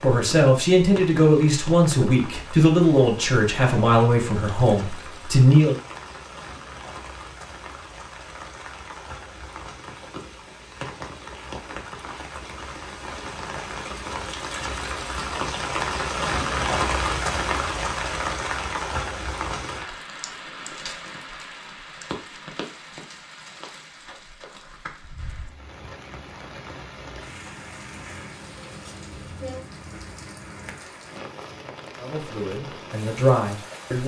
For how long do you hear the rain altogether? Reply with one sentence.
You can hear the rain for 34 seconds altogether.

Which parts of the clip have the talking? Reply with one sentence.
The talking can be heard from 0.0 to 5.8 s and from 31.9 to 34.0 s.